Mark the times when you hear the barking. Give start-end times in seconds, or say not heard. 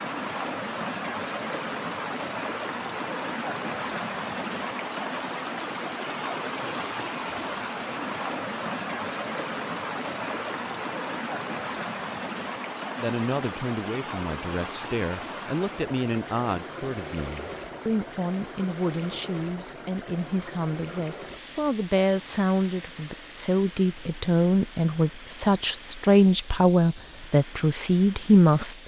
not heard.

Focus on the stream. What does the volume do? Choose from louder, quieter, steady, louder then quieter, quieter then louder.
quieter.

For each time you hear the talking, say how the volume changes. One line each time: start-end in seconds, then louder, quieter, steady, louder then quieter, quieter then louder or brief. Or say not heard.
12.9-28.8 louder.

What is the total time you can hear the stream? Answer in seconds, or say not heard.
29 s.